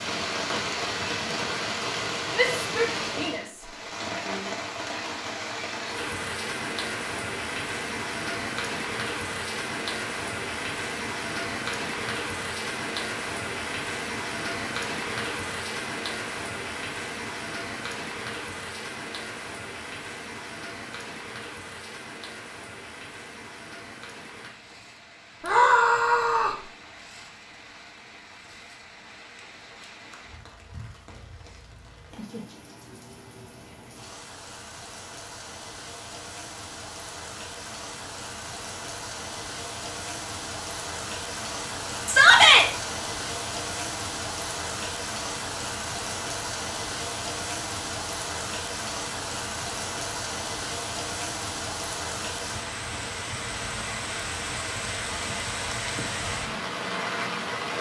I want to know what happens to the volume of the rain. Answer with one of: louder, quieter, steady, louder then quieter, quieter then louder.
quieter then louder.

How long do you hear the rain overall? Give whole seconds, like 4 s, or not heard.
58 s.